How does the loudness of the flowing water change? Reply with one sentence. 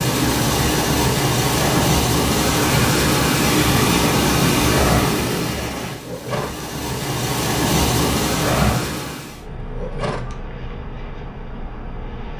The loudness of the flowing water goes down, then up.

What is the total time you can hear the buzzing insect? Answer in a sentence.
You can hear the buzzing insect for 3 seconds altogether.